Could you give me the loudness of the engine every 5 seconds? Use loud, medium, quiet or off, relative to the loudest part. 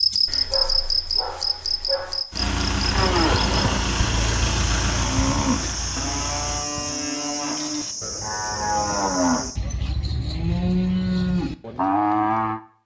loud, medium, off.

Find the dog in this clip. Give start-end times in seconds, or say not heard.
0.2-2.2.